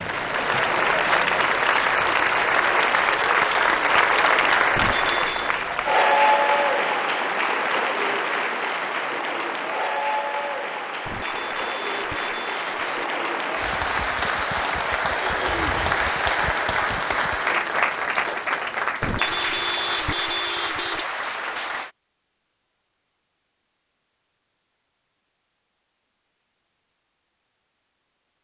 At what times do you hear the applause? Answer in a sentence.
You can hear the applause from 0.0 to 21.9 s.